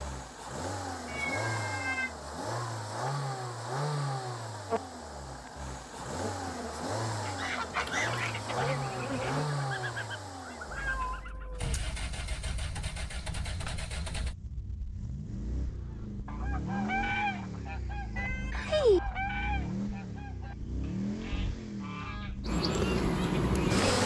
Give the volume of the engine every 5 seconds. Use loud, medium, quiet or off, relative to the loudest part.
loud, loud, medium, loud, loud.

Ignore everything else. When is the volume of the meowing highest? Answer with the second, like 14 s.
19 s.